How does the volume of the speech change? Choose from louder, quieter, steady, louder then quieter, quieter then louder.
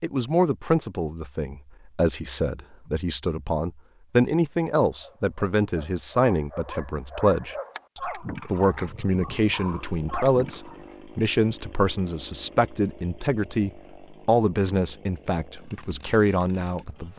steady.